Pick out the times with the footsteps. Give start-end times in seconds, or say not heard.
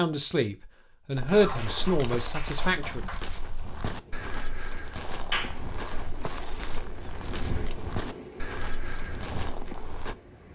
1.1-10.2.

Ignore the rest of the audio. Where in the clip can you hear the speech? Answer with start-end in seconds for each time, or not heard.
0.0-3.0.